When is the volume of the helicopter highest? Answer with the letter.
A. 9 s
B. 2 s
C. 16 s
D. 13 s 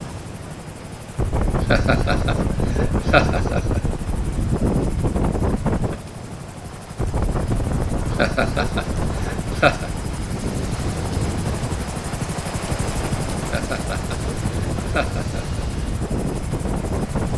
D.